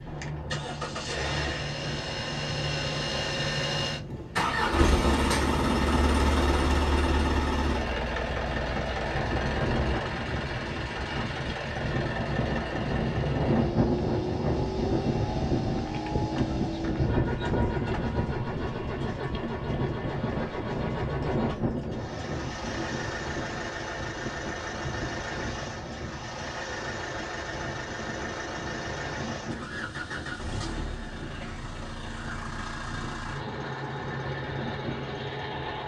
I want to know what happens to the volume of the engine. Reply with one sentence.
The volume of the engine goes down.